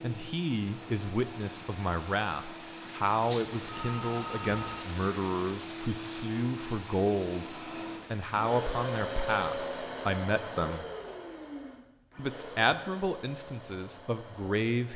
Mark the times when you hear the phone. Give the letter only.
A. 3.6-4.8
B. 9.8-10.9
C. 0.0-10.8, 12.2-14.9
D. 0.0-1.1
A.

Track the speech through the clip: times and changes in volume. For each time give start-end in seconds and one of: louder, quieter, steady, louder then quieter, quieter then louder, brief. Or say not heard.
0.0-10.8 steady
12.2-14.9 brief.